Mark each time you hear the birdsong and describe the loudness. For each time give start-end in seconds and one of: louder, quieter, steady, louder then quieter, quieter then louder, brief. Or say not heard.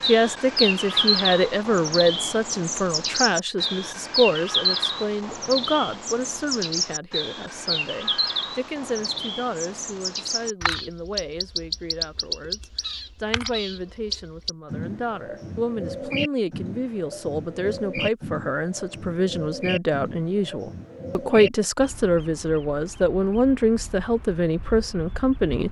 0.0-25.6 quieter.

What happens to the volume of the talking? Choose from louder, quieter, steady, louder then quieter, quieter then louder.
quieter then louder.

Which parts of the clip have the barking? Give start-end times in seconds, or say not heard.
not heard.